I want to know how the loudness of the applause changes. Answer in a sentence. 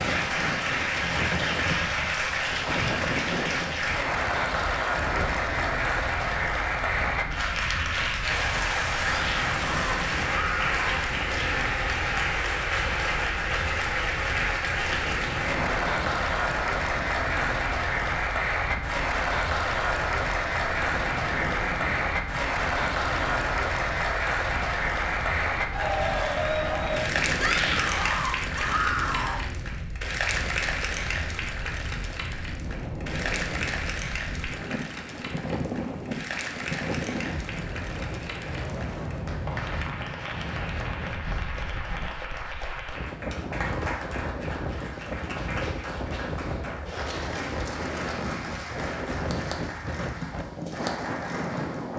The loudness of the applause goes down.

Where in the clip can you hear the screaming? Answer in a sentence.
You can hear the screaming from 9.0 to 11.1 s and from 27.4 to 29.4 s.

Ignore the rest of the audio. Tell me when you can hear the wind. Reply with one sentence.
You can hear the wind from 0.0 to 51.9 s.